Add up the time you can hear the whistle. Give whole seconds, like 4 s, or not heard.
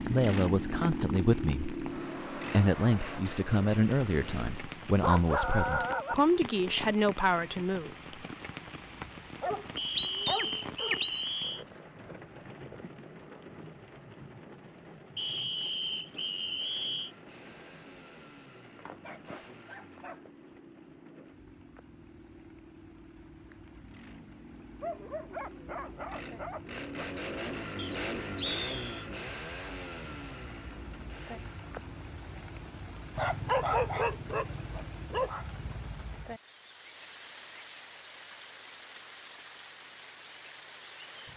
5 s.